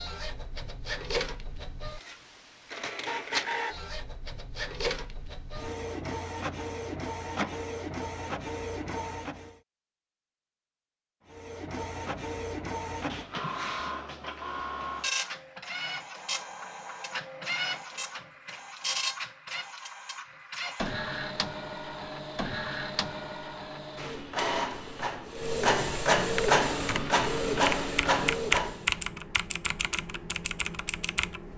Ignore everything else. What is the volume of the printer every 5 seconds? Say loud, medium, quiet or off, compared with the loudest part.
medium, medium, medium, medium, medium, loud, off.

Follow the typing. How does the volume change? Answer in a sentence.
The loudness of the typing goes up, then down.